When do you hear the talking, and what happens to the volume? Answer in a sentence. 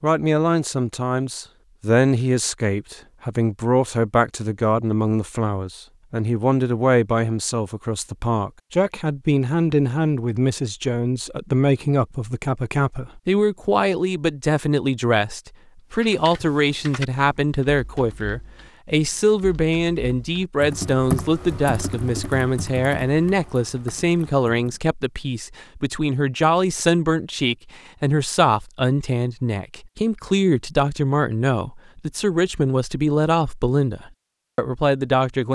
The talking can be heard from 0.0 to 35.5 s, at a steady volume.